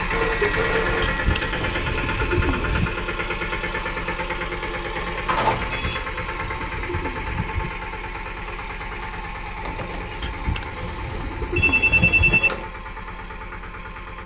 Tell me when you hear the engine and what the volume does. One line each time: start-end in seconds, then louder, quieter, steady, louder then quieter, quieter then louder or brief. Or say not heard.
0.0-14.2 quieter.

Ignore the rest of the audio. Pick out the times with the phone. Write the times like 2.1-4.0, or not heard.
0.1-2.0, 5.2-6.0, 11.6-12.7.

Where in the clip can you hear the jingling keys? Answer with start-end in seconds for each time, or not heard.
not heard.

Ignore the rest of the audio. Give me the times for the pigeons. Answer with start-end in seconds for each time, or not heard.
0.4-3.0, 5.0-7.7, 9.6-12.4.